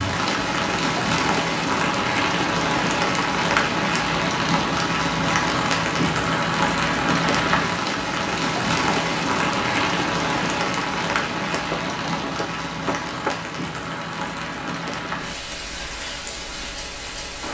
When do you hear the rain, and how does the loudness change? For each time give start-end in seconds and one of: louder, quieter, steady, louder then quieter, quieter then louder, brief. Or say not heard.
0.0-17.4 quieter.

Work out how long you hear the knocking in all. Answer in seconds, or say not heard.
2 s.